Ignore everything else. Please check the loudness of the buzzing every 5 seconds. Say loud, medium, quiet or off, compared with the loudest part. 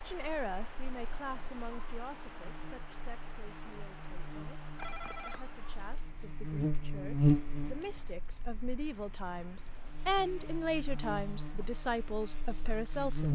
quiet, loud, medium.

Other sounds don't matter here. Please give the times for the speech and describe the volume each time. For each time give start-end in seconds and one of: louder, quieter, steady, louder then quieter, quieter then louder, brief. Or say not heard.
0.0-13.2 quieter then louder.